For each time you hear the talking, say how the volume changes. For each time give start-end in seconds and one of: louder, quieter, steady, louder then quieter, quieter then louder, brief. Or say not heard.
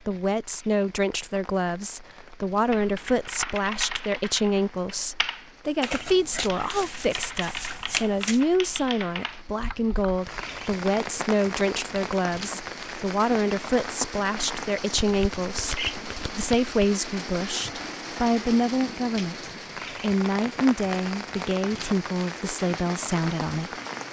0.1-23.8 steady.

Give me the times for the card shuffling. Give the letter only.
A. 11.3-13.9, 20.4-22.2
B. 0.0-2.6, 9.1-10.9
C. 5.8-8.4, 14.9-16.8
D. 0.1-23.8
C.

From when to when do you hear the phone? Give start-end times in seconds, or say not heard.
not heard.